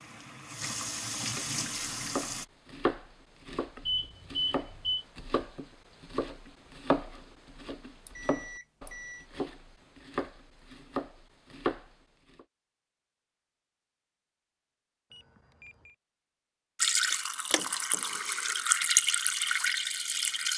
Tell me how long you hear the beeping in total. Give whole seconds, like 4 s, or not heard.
3 s.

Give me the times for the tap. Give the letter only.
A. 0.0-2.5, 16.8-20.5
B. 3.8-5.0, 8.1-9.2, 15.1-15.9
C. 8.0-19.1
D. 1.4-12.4
A.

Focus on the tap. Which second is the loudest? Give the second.
19 s.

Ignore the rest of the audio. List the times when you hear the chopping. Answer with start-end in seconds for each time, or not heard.
1.4-12.4.